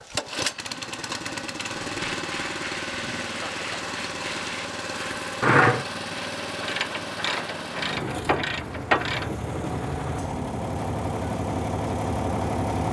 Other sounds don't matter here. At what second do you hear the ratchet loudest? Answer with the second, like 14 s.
6 s.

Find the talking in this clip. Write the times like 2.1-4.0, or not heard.
not heard.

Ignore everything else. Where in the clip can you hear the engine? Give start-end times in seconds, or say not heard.
0.0-12.8.